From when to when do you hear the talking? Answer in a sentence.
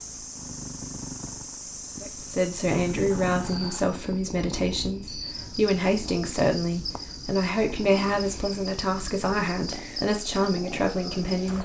The talking can be heard from 2.0 to 11.6 s.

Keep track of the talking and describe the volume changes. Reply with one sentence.
The volume of the talking stays about the same.